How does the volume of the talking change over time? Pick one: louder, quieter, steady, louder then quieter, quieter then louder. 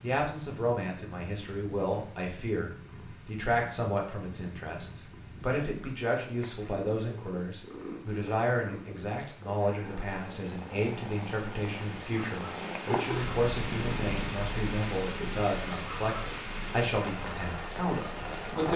steady.